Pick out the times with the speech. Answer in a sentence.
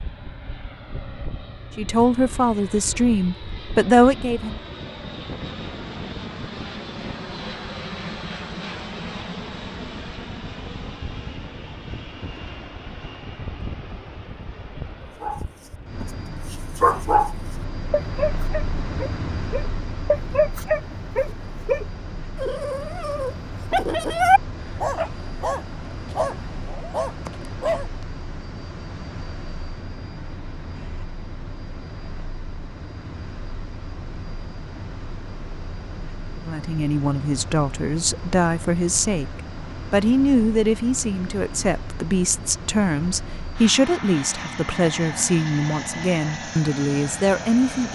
You can hear the speech from 1.8 to 4.6 s and from 36.5 to 47.9 s.